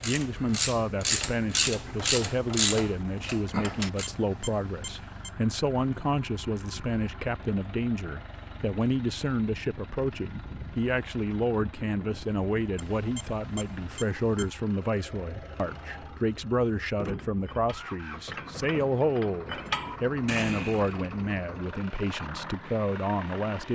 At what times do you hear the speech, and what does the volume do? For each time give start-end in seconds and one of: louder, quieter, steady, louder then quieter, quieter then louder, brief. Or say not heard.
0.0-23.7 steady.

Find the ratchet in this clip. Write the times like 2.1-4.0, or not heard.
0.0-4.1, 17.1-23.7.